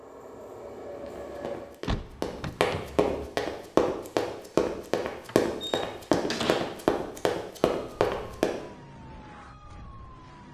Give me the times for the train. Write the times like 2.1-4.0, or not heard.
0.0-1.8.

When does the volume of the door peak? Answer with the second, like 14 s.
6 s.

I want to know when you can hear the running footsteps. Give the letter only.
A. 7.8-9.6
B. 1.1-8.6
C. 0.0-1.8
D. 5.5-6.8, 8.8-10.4
B.